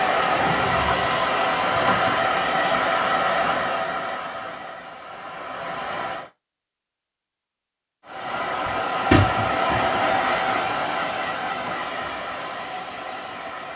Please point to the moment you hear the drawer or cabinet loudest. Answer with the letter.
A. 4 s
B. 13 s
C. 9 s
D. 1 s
C.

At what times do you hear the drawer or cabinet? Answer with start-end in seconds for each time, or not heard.
0.3-2.1, 8.7-10.2.